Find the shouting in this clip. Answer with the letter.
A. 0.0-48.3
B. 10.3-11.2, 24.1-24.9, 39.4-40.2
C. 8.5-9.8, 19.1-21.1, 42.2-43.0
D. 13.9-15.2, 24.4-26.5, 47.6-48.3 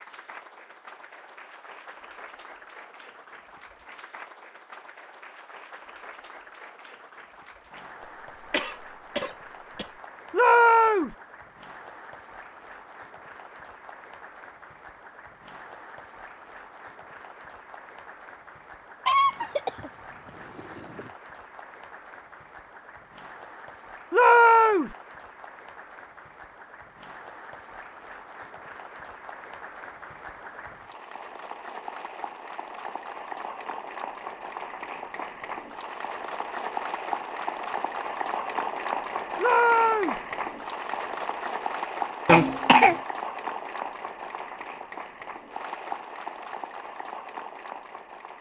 B.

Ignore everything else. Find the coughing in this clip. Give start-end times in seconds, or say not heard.
8.5-9.8, 19.1-21.1, 42.2-43.0.